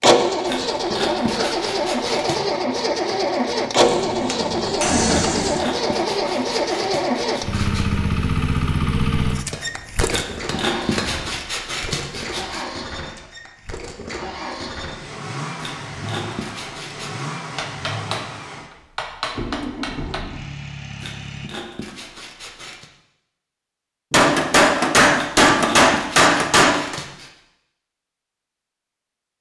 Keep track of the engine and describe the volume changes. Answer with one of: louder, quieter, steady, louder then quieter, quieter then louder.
quieter.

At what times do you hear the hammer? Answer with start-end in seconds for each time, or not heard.
3.8-5.7, 9.5-11.4, 17.6-18.2, 18.9-20.2, 24.1-26.9.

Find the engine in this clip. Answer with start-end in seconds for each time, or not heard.
0.0-21.5.